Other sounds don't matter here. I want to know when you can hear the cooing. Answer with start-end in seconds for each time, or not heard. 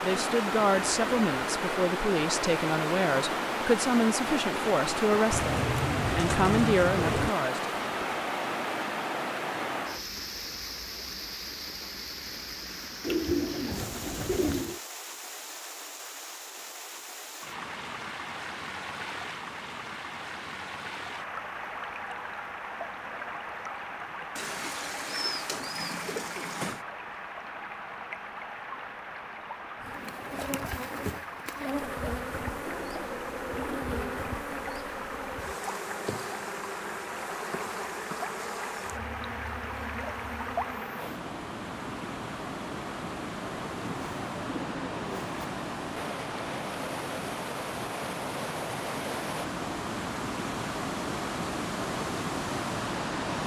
5.3-7.3, 13.0-14.8, 24.4-26.8, 32.5-34.2, 43.8-45.4.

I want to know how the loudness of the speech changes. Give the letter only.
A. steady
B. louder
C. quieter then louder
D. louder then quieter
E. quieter
A.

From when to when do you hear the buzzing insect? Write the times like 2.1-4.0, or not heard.
29.8-41.2.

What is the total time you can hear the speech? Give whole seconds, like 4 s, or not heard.
8 s.